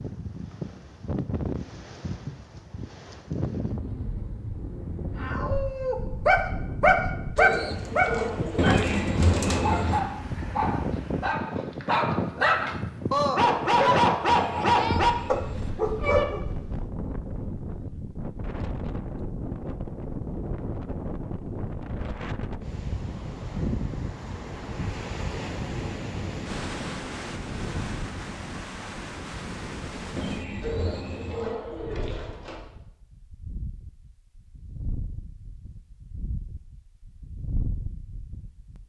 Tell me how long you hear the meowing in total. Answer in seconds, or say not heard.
5 s.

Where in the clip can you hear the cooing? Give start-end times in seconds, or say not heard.
7.3-9.8, 30.6-32.6.